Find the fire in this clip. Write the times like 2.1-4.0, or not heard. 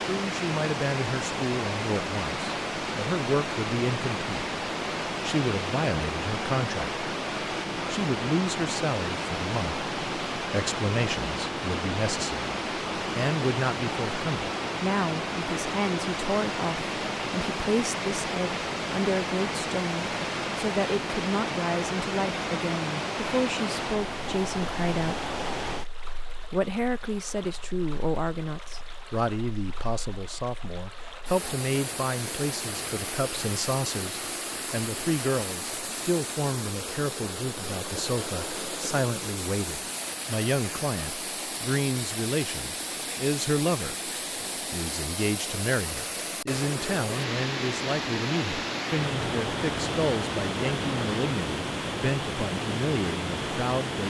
not heard.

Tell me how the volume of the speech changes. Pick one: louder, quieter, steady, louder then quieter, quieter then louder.
steady.